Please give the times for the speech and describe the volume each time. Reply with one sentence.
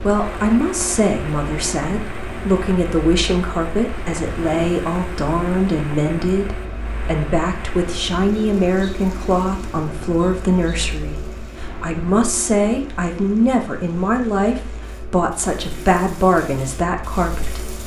The speech can be heard from 0.0 to 17.8 s, at a steady volume.